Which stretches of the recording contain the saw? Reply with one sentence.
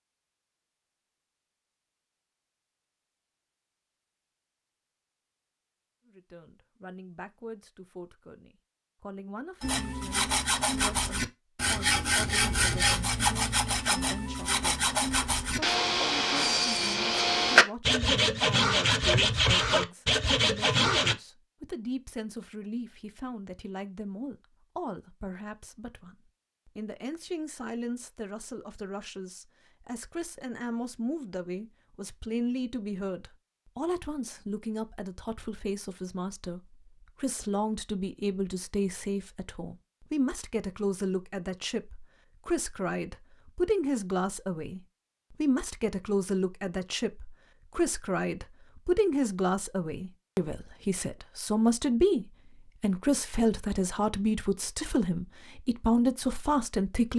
You can hear the saw from 9.6 to 21.1 s.